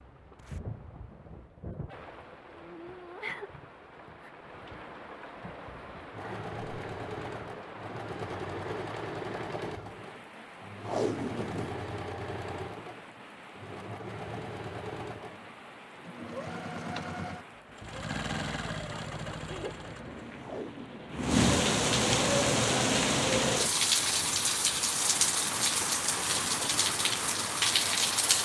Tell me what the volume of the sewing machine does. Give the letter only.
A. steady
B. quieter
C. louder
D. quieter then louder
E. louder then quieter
A.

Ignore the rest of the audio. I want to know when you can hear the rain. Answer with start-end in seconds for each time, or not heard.
0.0-28.4.